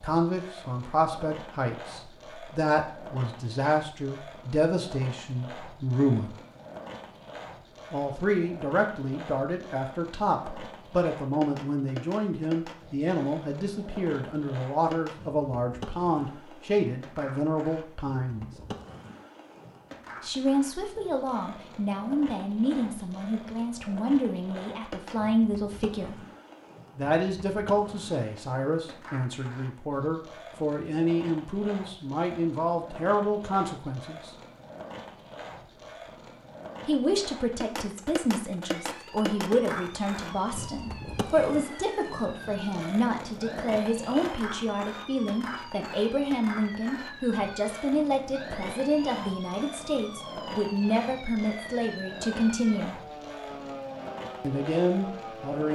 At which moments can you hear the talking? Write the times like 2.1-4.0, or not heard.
0.0-6.3, 7.9-18.5, 20.2-26.2, 26.9-34.3, 36.9-53.0, 54.4-55.7.